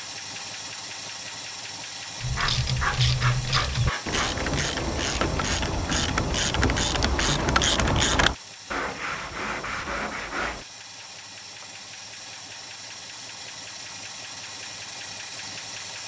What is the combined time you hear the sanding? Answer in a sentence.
You can hear the sanding for 4 seconds altogether.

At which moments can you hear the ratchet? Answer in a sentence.
The ratchet can be heard from 2.2 to 8.3 s.